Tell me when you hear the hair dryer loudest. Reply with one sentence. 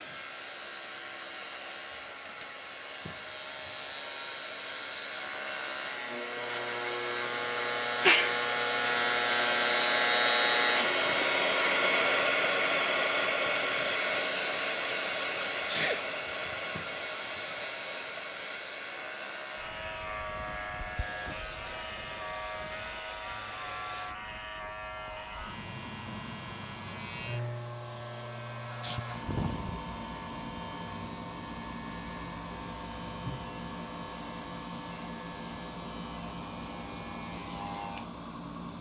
The volume of the hair dryer peaks at 12 seconds.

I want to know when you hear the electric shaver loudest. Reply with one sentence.
The loudest moment of the electric shaver is at 10 seconds.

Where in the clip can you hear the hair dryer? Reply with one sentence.
The hair dryer can be heard from 0.0 to 38.7 s.